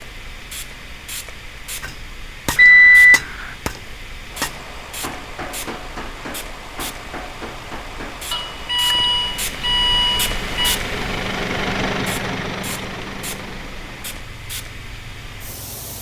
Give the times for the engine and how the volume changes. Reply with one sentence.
You can hear the engine from 4.2 to 15.9 s, getting louder then quieter.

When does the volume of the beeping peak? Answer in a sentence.
The loudest moment of the beeping is at 3 seconds.